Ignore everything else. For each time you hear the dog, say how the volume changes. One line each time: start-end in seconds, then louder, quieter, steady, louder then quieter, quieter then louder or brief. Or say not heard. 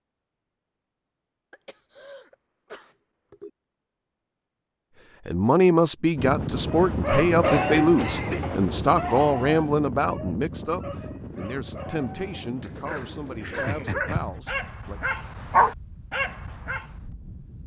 6.8-16.9 quieter then louder.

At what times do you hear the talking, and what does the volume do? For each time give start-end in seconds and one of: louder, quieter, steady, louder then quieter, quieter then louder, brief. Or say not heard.
5.2-15.0 quieter.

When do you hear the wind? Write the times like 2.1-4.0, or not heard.
6.2-17.6.